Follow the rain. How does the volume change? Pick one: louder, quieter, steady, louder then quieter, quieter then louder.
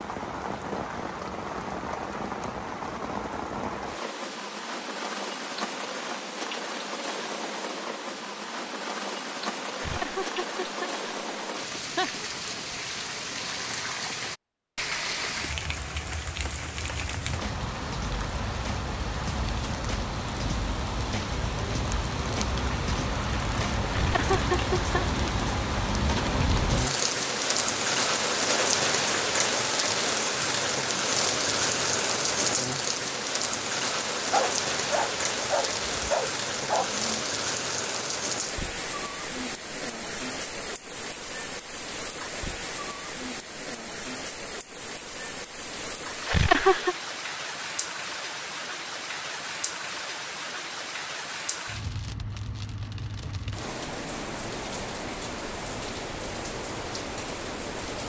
louder then quieter.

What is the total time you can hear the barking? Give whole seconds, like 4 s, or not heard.
3 s.